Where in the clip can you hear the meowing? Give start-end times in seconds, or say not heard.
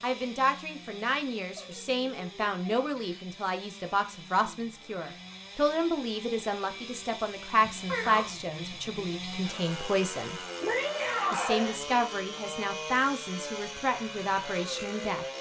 1.6-3.2, 7.6-8.3, 10.6-11.8.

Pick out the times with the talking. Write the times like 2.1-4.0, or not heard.
0.0-10.4, 11.3-15.2.